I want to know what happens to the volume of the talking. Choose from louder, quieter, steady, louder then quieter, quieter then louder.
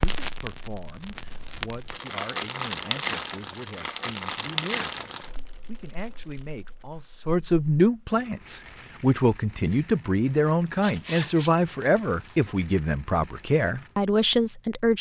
louder.